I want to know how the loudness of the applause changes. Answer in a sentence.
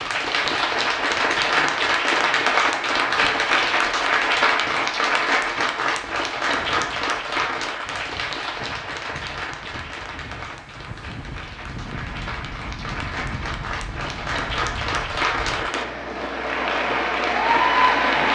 The loudness of the applause goes down, then up.